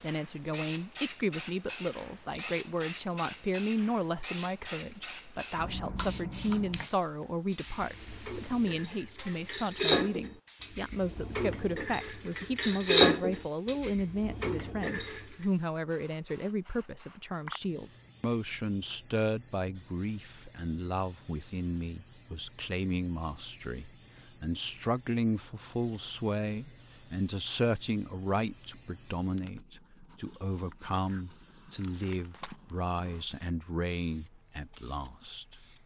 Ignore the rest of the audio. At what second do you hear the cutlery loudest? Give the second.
13 s.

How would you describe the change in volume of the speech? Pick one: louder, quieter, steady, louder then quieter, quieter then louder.
steady.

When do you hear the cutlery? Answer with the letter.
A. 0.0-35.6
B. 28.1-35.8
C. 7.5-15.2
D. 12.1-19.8
C.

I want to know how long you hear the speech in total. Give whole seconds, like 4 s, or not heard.
36 s.